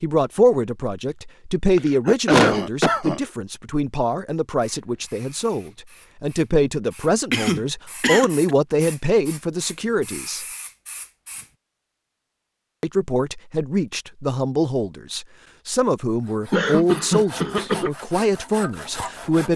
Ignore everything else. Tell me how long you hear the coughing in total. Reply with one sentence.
The coughing can be heard for 4 seconds in total.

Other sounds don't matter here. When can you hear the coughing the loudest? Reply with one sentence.
The volume of the coughing peaks at 2 seconds.